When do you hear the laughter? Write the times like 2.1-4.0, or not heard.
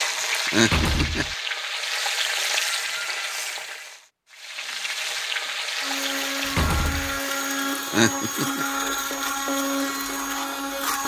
0.3-1.2, 7.8-8.7.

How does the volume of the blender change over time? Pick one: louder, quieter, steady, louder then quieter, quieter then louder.
louder.